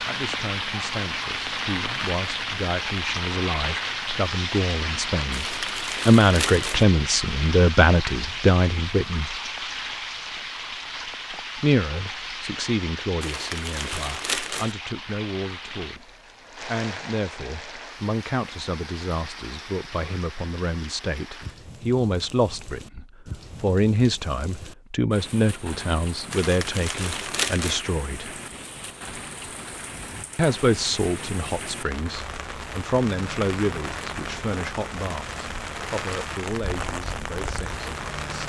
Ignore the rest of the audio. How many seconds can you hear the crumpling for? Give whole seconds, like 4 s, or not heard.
5 s.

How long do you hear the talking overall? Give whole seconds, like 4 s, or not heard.
34 s.